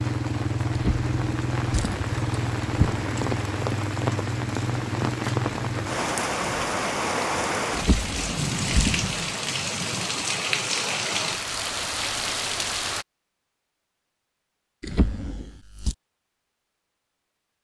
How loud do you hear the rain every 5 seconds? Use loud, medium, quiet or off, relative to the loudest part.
loud, loud, loud, off.